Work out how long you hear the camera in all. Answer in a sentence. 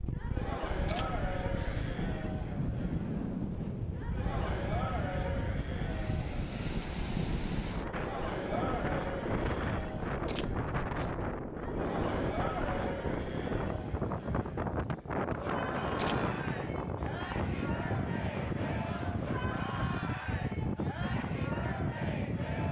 The camera can be heard for 4 seconds in total.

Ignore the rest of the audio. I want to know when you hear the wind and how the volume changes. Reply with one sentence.
You can hear the wind from 0.0 to 22.6 s, at a steady volume.